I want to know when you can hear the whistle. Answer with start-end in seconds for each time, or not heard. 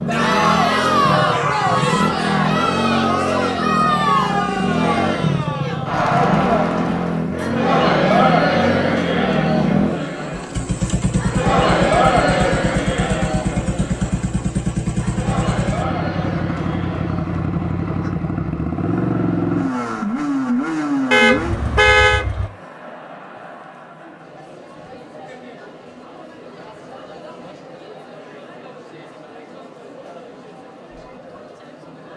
not heard.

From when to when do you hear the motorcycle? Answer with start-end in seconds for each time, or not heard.
0.0-22.5.